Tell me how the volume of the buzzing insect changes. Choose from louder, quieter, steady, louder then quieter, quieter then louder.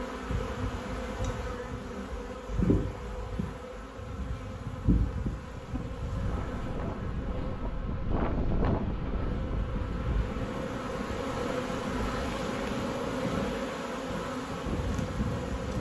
quieter then louder.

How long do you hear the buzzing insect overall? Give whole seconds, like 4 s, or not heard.
16 s.